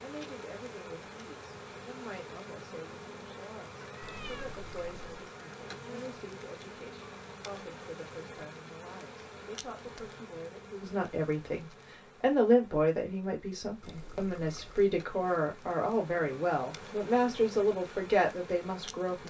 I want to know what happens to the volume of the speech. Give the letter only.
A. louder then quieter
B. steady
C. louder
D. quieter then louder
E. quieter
C.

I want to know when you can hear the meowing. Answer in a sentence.
The meowing can be heard from 3.9 to 4.5 s.